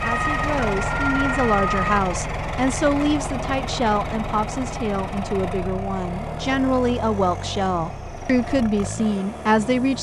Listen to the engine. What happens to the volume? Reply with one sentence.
The loudness of the engine goes down.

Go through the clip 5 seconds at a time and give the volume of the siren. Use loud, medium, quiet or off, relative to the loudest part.
loud, off.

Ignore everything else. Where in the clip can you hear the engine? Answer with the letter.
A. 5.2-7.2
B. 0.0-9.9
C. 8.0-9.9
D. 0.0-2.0
B.